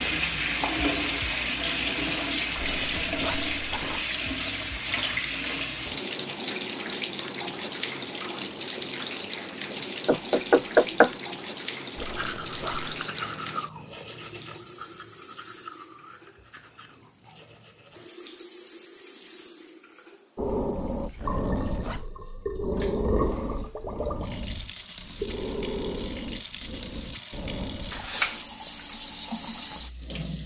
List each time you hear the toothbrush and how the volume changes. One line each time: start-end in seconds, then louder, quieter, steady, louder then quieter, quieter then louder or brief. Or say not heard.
12.0-18.1 quieter.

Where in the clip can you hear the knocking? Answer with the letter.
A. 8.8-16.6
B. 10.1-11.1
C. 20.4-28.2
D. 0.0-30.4
B.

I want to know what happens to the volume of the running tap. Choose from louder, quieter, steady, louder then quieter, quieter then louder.
quieter then louder.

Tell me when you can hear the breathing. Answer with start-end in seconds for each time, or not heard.
20.4-28.2.